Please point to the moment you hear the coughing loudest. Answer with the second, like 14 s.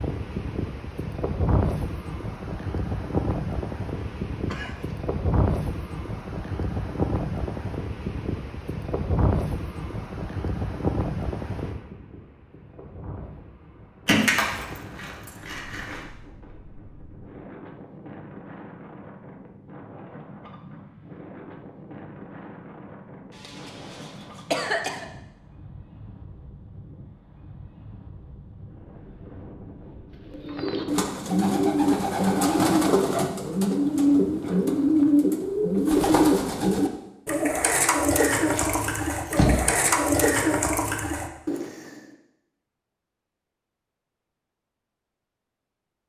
25 s.